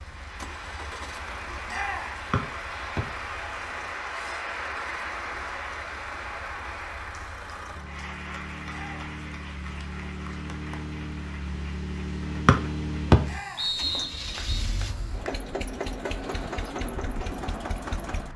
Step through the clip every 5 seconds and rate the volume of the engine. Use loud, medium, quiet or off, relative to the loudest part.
medium, medium, loud, loud.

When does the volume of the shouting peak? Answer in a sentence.
The loudest moment of the shouting is at 2 seconds.